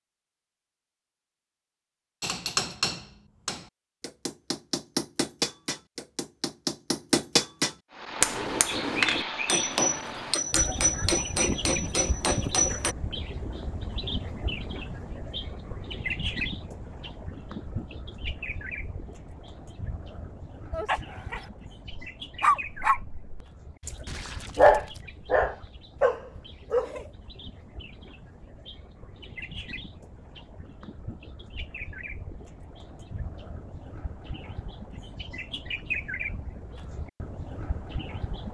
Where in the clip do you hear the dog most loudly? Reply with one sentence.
The volume of the dog peaks at 25 seconds.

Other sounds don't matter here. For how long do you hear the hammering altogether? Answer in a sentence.
You can hear the hammering for 11 seconds altogether.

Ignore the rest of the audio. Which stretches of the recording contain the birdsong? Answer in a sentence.
You can hear the birdsong from 7.9 to 38.4 s.